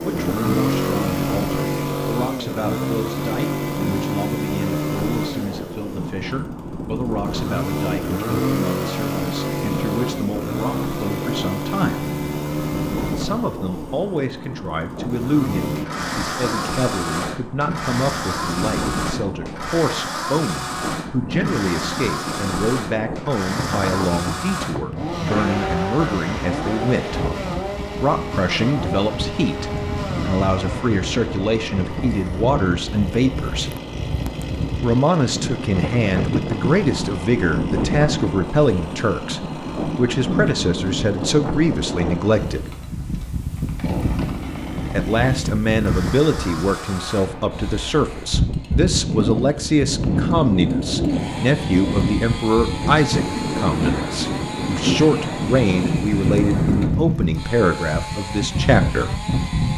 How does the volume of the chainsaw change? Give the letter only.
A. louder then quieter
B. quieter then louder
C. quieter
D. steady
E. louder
C.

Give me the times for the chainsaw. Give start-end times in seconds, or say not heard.
0.0-59.7.